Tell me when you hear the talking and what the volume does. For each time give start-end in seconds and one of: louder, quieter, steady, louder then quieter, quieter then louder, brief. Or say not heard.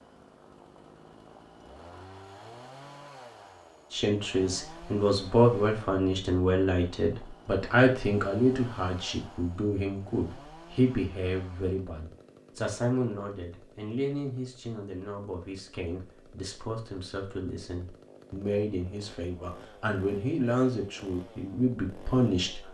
3.9-22.6 quieter then louder.